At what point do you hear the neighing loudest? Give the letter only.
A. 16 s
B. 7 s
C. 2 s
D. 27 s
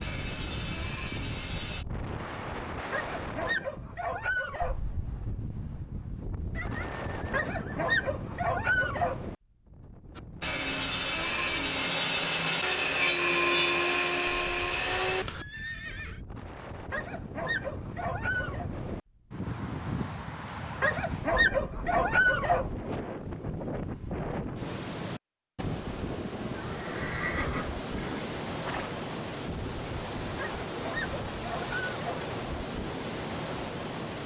D.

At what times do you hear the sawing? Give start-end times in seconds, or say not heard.
0.0-1.9, 10.2-15.4.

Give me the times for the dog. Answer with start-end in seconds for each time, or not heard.
2.9-4.8, 7.3-9.2, 16.9-18.7, 20.8-22.6, 30.4-32.2.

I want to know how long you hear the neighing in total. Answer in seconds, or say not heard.
5 s.